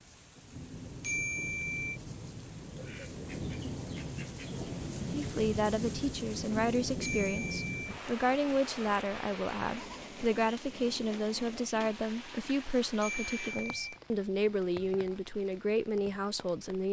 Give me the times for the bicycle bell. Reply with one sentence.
The bicycle bell can be heard from 1.0 to 2.0 s, from 7.0 to 7.7 s and from 13.0 to 13.9 s.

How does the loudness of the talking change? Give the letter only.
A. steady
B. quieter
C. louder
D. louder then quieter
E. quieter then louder
A.